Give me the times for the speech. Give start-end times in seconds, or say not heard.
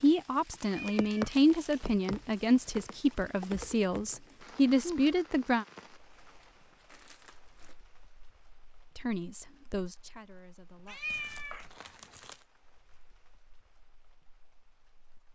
0.0-5.7, 8.9-11.0.